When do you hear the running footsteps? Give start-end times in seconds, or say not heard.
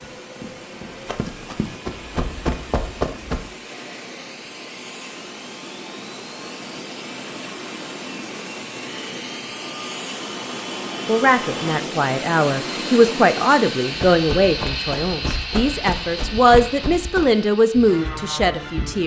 0.0-3.5, 13.9-19.0.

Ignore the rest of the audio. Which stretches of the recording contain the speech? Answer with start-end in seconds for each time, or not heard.
11.1-19.0.